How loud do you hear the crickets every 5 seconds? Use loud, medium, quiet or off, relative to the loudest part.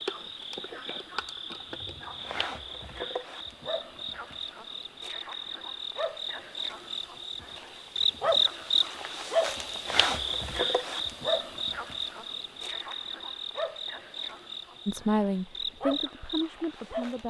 medium, loud, loud, medium.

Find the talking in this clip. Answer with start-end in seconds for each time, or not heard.
14.8-17.2.